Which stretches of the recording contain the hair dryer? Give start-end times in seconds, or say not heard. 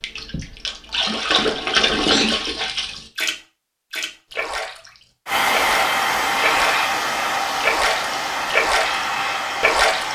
5.2-10.0.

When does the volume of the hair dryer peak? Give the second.
6 s.